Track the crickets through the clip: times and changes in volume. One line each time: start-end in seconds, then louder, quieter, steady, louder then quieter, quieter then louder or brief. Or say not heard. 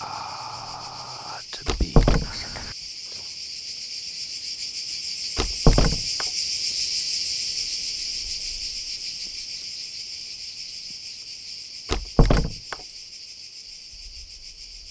0.0-14.8 louder then quieter.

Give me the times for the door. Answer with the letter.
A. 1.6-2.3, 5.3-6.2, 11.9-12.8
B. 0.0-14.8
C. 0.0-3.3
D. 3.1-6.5
A.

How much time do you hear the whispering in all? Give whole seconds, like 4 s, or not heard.
3 s.